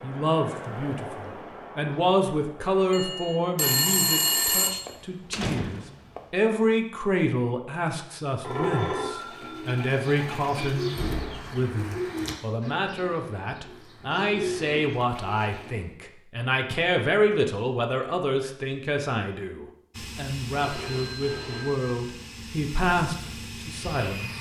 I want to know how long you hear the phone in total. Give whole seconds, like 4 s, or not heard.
5 s.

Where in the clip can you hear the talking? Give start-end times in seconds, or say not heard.
0.0-24.3.